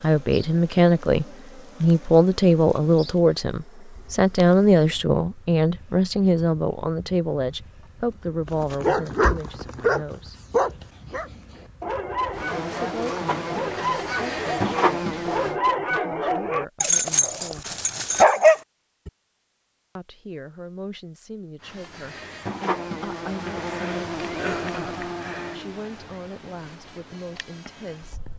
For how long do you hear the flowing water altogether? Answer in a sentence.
You can't hear the flowing water here.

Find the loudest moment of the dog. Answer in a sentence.
The loudest moment of the dog is at 18 seconds.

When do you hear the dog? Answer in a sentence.
The dog can be heard from 8.4 to 19.1 s.